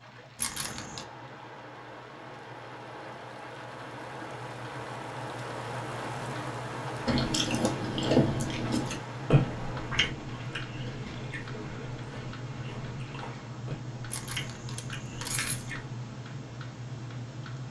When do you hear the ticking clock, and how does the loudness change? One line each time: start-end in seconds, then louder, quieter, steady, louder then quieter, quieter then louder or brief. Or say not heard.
0.0-17.6 louder.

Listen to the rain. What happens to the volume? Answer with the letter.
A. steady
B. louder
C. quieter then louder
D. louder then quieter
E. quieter
D.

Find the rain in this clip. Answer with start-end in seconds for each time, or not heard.
0.0-13.5.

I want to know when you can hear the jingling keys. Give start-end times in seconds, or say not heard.
0.3-1.1, 14.1-15.8.